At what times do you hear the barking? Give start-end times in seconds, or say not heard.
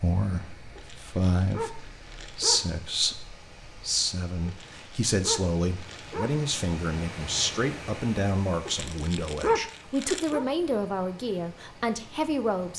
0.8-2.7, 4.5-6.4, 8.7-10.4.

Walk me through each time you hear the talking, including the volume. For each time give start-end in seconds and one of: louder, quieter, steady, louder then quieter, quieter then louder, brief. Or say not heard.
0.0-12.7 steady.